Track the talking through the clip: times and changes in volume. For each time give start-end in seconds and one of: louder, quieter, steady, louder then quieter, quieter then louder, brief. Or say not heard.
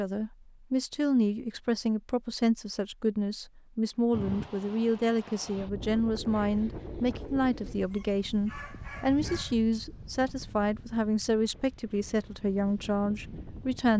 0.0-13.9 steady.